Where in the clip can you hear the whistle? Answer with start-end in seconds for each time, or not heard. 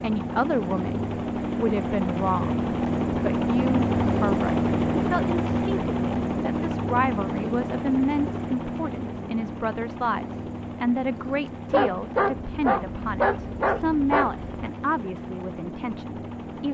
not heard.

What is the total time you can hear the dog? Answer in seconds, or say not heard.
3 s.